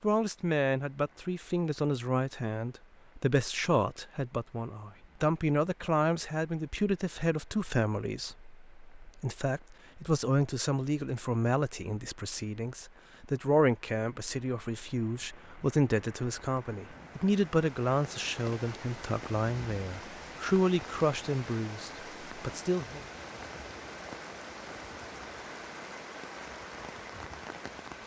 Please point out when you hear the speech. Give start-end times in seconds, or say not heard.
0.0-23.0.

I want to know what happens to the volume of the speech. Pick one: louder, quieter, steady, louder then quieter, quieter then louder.
steady.